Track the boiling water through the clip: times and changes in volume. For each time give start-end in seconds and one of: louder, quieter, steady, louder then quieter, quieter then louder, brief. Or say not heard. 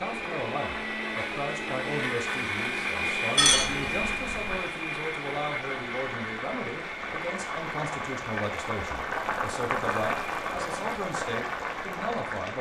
0.0-12.5 louder.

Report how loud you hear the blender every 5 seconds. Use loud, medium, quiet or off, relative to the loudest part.
loud, medium, medium.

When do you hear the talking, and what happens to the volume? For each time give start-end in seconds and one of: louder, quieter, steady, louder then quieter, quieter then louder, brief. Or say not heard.
0.0-12.5 steady.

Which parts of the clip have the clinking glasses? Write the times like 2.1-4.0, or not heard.
3.4-4.6.